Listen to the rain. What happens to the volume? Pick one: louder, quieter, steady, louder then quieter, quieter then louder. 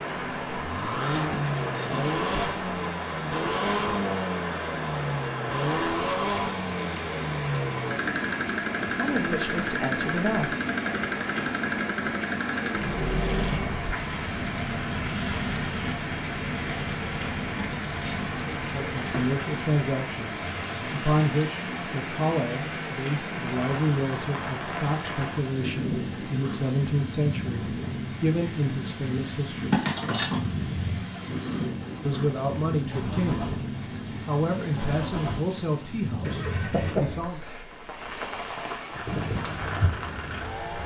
steady.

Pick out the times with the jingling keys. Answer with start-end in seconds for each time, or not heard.
1.3-2.1, 17.6-19.3, 29.7-30.5.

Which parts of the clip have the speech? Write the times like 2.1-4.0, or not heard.
8.9-10.5, 18.6-29.8, 32.0-33.4, 34.2-37.4.